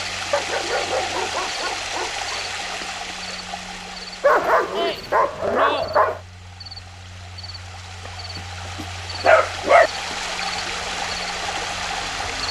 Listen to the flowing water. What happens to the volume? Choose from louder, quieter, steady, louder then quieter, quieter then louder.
quieter then louder.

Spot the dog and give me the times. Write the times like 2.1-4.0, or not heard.
0.3-2.1, 4.2-6.2, 8.3-9.9.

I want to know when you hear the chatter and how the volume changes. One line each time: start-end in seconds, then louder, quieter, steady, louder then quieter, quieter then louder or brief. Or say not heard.
not heard.